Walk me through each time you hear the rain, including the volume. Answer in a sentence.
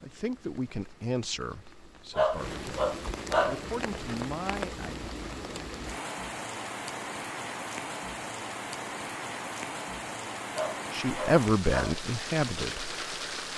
You can hear the rain from 0.0 to 13.5 s, getting louder.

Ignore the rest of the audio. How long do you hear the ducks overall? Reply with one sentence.
The ducks can't be heard in this clip.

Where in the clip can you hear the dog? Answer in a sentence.
You can hear the dog from 2.1 to 3.6 s and from 10.5 to 12.0 s.